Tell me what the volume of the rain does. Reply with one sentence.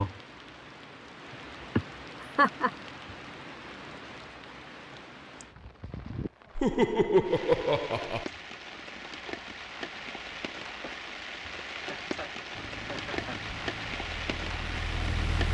The volume of the rain goes up.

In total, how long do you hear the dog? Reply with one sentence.
The dog can't be heard in this clip.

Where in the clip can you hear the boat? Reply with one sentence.
You can hear the boat from 12.5 to 15.4 s.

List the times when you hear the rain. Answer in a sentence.
You can hear the rain from 0.0 to 15.4 s.